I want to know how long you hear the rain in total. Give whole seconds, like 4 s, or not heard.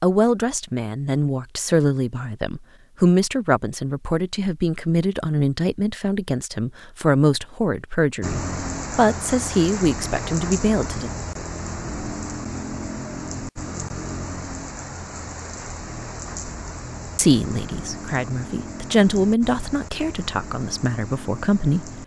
14 s.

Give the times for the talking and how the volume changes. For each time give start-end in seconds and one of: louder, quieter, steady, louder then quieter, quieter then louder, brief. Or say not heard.
0.0-11.1 steady
17.1-21.9 louder then quieter.